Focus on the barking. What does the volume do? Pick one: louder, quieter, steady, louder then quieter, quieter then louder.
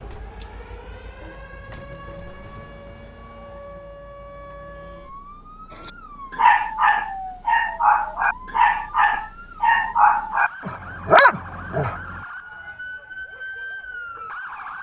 steady.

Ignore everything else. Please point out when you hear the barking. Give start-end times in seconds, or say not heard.
5.8-12.2.